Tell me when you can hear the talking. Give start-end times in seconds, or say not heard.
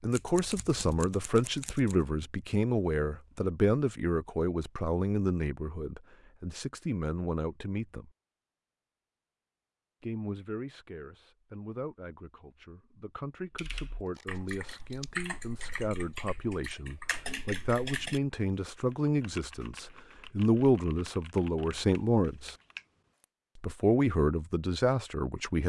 0.0-8.1, 10.0-22.6, 23.6-25.6.